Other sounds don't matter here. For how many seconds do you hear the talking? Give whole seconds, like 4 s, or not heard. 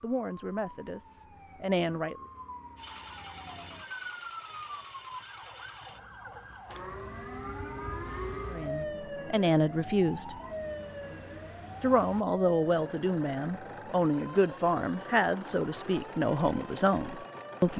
10 s.